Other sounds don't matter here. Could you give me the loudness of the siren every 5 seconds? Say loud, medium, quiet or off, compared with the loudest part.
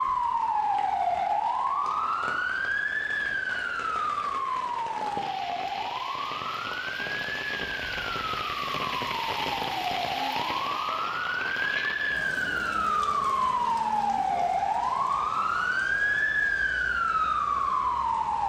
loud, medium, loud, loud.